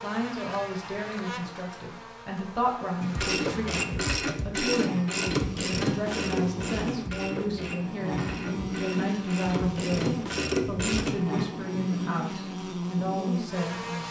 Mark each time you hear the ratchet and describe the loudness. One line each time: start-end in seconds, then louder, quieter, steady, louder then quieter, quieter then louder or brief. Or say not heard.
3.0-11.2 quieter then louder.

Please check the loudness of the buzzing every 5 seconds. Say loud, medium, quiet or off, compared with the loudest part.
medium, loud, loud.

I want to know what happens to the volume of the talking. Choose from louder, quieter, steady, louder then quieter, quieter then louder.
steady.